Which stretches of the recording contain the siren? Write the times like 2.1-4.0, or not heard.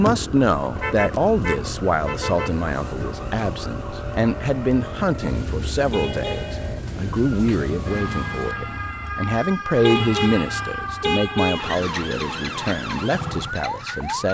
0.0-14.2.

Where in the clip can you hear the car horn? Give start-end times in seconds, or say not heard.
0.8-2.5, 5.9-6.7, 9.8-11.8.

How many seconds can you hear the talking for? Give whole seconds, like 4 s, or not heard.
14 s.